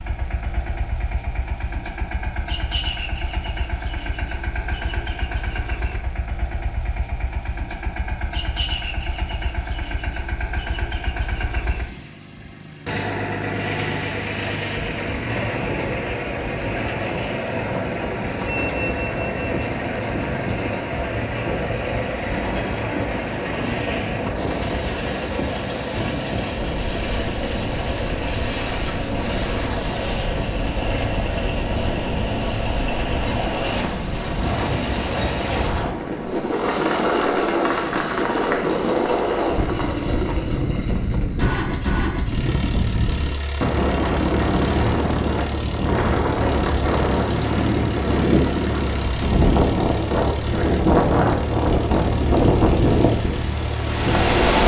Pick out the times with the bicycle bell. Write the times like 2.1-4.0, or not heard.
18.4-19.8.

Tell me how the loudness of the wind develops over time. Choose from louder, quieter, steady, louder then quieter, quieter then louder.
louder.